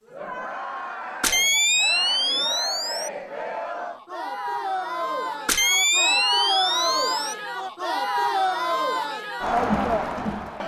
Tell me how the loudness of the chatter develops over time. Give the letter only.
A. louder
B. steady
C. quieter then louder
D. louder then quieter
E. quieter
A.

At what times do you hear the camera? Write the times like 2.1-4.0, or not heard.
1.2-3.1, 5.5-7.3.